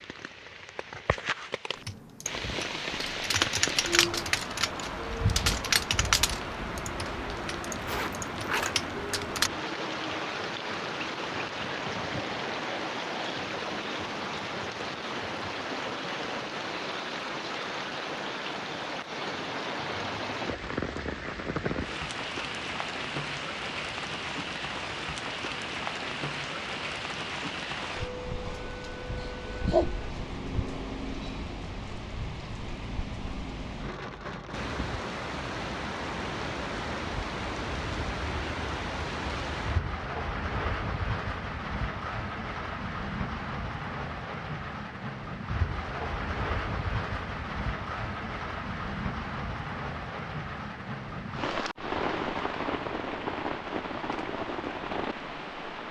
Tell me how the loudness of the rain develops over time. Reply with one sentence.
The loudness of the rain stays about the same.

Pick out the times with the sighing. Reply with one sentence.
The sighing can't be heard in this clip.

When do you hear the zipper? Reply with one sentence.
The zipper can be heard from 7.8 to 8.8 s.